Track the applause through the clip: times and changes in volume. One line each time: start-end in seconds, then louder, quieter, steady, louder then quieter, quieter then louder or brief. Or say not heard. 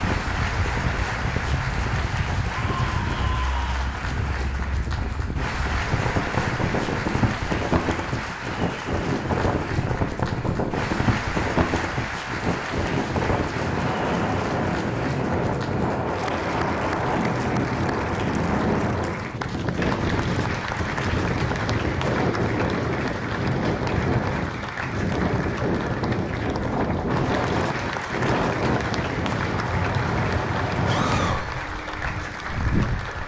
0.0-33.2 steady.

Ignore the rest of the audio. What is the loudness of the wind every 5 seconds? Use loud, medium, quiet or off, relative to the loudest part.
medium, loud, loud, loud, loud, loud, loud.